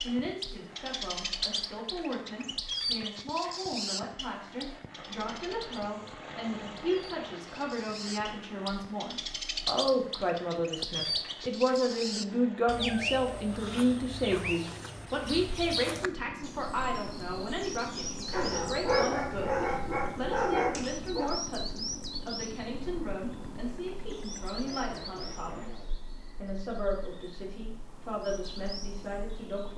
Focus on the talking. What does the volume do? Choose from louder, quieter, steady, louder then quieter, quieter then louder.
louder then quieter.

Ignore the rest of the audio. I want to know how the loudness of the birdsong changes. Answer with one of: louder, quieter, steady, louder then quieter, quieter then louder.
quieter.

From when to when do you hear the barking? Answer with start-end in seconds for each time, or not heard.
18.3-21.3.